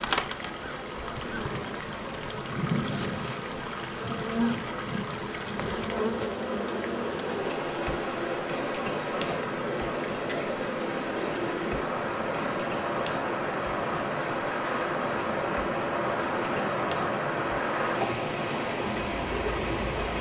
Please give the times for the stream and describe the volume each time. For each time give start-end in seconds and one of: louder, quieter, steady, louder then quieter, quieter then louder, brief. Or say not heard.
0.0-20.1 louder.